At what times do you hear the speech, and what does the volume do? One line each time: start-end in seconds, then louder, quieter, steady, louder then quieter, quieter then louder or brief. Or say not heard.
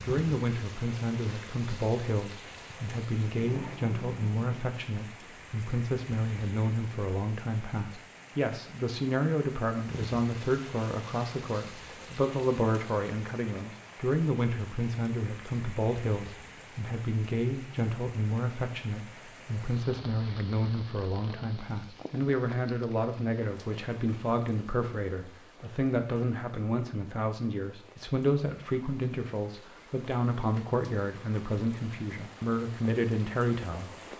0.0-33.9 steady.